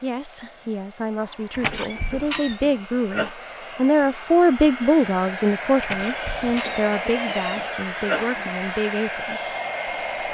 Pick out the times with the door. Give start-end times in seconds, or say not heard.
1.5-2.6, 5.8-7.7.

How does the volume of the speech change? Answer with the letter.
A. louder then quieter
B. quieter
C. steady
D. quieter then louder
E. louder
A.